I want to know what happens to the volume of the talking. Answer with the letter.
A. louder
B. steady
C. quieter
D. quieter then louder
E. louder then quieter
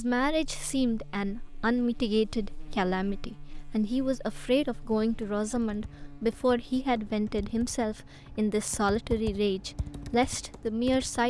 B.